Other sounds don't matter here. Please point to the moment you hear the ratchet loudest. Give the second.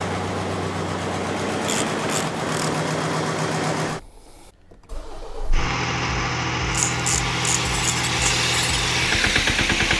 7 s.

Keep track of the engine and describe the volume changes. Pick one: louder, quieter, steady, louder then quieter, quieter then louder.
quieter then louder.